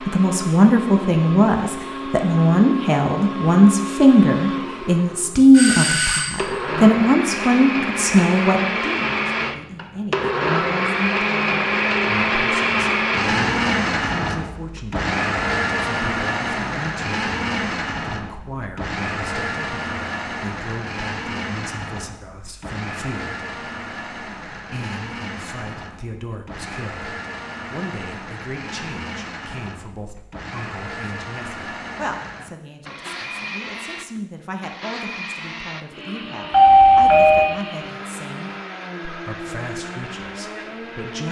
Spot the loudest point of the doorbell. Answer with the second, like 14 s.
37 s.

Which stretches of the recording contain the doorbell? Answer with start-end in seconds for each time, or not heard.
5.5-6.5, 36.5-37.5.